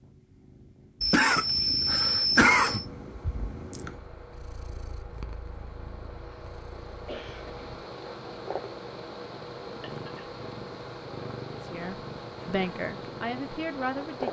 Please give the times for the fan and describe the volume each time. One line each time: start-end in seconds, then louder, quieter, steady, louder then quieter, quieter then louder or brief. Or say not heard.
2.6-14.2 louder.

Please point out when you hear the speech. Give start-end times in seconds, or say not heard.
11.7-14.2.